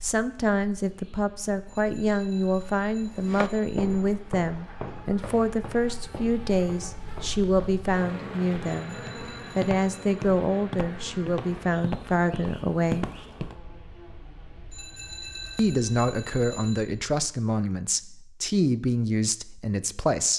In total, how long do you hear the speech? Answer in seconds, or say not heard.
18 s.